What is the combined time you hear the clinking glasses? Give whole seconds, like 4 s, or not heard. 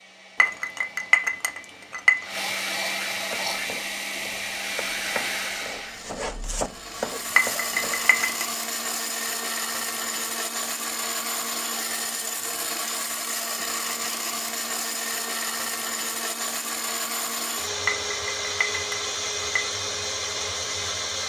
5 s.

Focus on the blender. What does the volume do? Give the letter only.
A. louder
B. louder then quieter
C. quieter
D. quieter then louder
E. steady
E.